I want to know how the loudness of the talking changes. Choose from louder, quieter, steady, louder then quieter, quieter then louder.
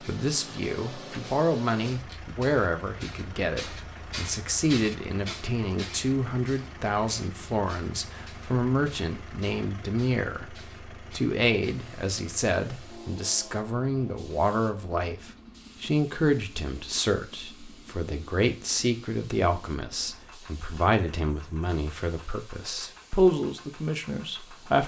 steady.